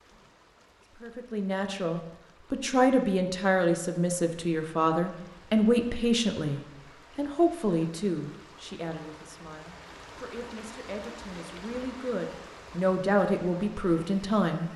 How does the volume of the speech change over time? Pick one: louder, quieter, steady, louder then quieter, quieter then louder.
quieter then louder.